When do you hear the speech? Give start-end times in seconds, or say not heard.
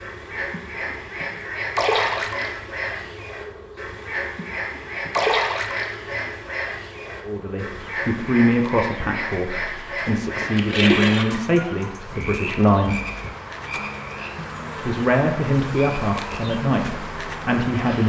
7.2-13.0, 14.8-18.0.